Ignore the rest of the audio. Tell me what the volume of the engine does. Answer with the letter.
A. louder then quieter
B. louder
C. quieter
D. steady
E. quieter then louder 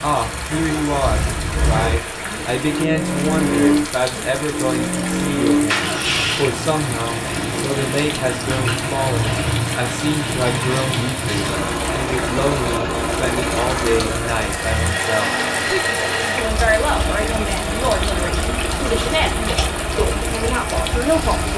D.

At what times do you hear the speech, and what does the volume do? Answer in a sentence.
You can hear the speech from 0.0 to 21.5 s, at a steady volume.